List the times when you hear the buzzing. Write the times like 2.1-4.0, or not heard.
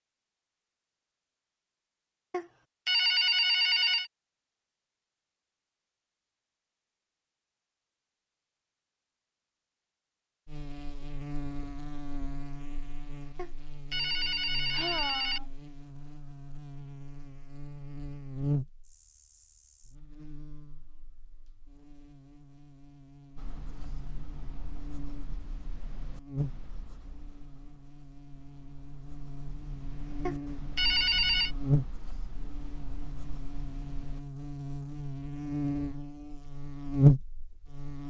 10.4-38.0.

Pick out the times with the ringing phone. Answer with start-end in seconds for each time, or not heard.
2.3-4.1, 13.3-15.4, 30.2-31.5.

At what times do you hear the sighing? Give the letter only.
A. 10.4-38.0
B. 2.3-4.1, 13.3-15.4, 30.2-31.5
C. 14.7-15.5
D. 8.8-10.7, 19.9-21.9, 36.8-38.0
C.